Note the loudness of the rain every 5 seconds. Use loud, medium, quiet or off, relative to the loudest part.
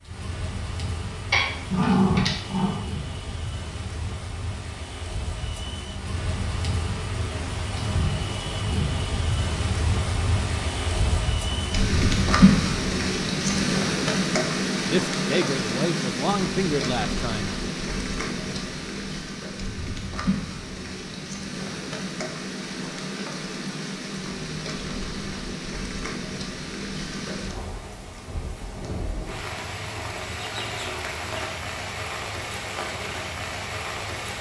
quiet, medium, loud, medium, medium, medium, medium.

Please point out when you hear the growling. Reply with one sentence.
You can hear the growling from 1.3 to 2.8 s.